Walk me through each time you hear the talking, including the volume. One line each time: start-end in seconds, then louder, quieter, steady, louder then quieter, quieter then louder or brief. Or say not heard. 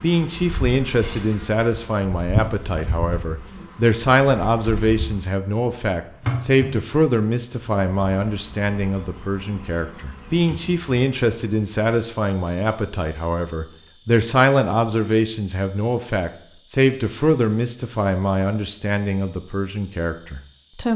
0.0-20.9 steady.